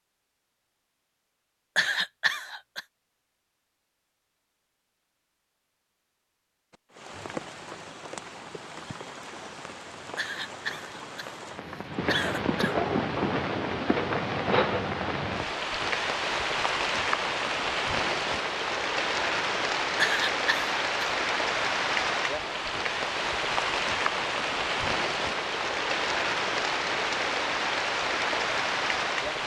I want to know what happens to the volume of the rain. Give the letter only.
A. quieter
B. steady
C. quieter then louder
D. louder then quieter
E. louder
E.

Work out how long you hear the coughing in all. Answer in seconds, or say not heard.
5 s.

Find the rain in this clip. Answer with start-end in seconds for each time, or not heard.
6.7-29.4.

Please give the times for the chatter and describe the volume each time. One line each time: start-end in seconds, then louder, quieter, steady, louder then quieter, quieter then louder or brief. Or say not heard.
not heard.